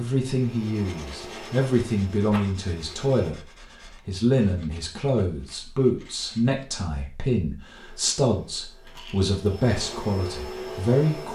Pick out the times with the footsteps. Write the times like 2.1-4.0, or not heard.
not heard.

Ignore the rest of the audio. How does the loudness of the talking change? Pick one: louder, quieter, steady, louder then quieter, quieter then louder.
steady.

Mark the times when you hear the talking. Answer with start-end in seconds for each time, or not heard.
0.0-11.2.